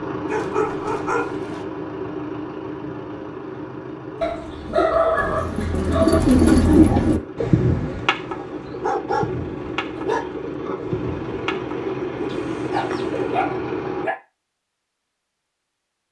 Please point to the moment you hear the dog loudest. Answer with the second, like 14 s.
5 s.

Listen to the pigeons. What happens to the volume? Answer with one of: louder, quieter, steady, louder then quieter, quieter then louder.
quieter.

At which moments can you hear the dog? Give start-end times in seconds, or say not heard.
0.2-1.6, 4.2-6.2, 8.3-10.2, 12.2-14.2.